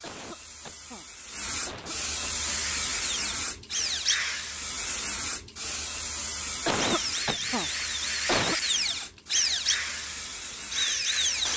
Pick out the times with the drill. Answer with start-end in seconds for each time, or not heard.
2.4-4.8, 6.7-11.5.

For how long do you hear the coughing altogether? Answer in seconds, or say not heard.
4 s.